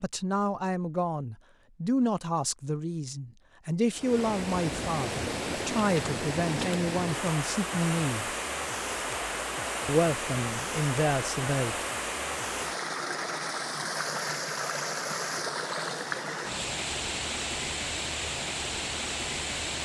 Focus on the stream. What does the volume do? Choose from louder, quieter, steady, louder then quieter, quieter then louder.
steady.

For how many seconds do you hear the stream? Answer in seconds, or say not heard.
16 s.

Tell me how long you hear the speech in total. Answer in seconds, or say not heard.
10 s.